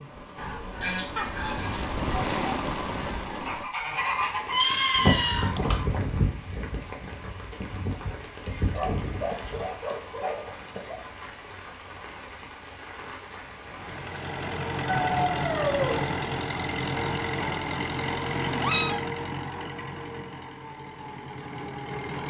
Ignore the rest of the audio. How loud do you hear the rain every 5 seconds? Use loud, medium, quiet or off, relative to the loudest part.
loud, medium, medium, medium, off.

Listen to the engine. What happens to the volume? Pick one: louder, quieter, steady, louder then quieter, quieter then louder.
quieter.